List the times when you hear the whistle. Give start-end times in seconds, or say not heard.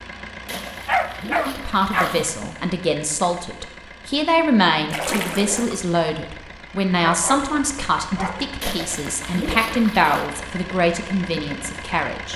not heard.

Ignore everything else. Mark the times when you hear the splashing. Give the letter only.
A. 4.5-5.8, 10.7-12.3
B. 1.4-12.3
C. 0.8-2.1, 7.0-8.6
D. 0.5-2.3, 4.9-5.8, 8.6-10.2
D.